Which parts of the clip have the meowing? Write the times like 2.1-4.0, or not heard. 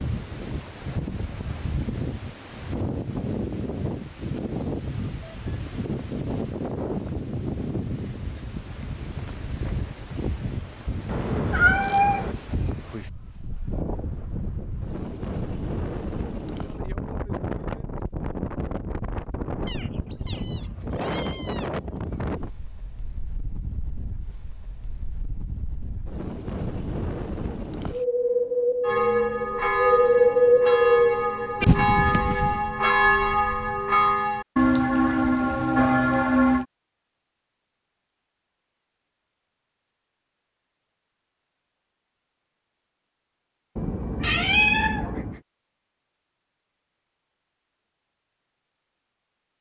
11.1-12.3, 19.6-21.6, 43.8-45.4.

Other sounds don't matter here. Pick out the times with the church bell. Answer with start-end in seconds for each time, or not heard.
28.8-36.6.